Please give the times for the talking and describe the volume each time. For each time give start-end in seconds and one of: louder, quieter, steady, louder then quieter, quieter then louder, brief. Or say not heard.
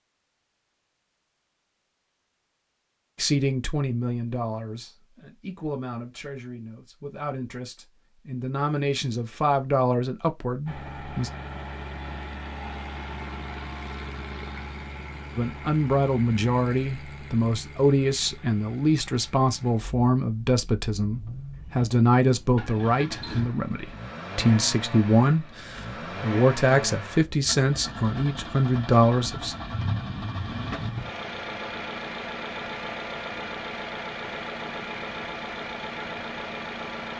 3.1-11.3 quieter then louder
15.3-29.6 steady.